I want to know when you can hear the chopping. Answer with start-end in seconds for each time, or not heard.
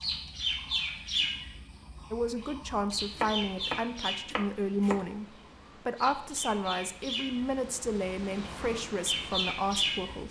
3.1-5.0.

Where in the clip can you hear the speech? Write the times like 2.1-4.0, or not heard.
2.1-5.2, 5.8-10.2.